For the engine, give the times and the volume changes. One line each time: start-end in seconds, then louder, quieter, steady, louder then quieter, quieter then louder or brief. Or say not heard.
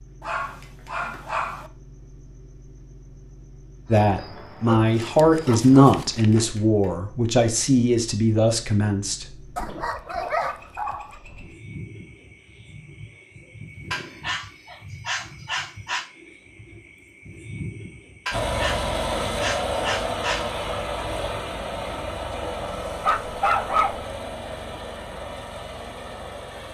18.3-26.6 quieter.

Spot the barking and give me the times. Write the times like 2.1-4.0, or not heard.
0.2-1.7, 4.7-6.5, 9.6-11.2, 13.9-16.1, 18.2-20.4, 23.0-24.1.